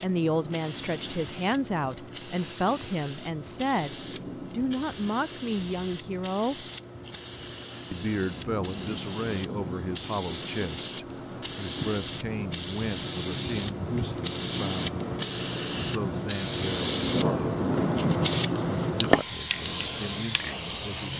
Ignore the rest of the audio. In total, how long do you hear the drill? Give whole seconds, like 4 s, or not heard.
not heard.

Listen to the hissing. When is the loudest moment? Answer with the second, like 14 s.
19 s.